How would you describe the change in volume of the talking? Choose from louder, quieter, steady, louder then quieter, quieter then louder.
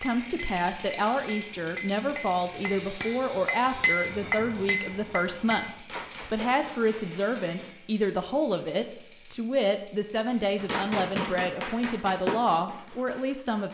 steady.